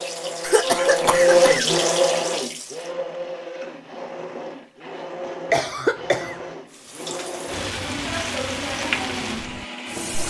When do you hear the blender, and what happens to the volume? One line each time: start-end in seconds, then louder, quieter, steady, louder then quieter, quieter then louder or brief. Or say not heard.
0.0-10.2 quieter.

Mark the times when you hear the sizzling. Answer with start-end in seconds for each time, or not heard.
0.0-2.9, 6.7-10.2.